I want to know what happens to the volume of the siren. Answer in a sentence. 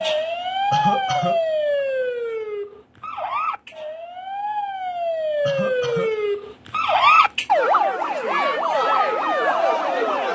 The loudness of the siren goes down, then up.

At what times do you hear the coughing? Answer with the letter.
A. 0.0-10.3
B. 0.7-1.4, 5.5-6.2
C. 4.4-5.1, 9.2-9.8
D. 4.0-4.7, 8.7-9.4
B.